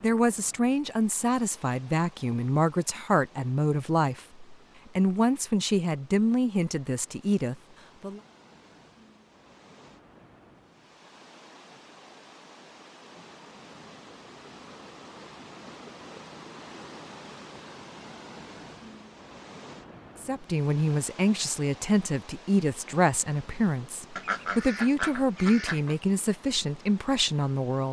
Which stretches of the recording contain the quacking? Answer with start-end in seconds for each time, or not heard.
24.1-25.9.